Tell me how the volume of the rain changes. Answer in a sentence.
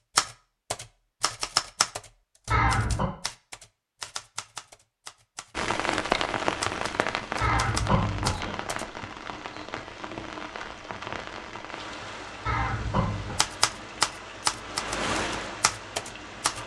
The volume of the rain goes down, then up.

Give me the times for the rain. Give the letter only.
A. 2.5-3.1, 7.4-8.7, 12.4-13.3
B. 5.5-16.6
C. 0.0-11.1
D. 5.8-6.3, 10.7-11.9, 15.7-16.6
B.